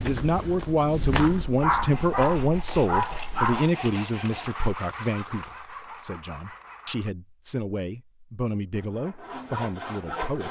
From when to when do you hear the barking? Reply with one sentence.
The barking can be heard from 1.2 to 3.7 s.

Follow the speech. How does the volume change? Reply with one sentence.
The volume of the speech goes down.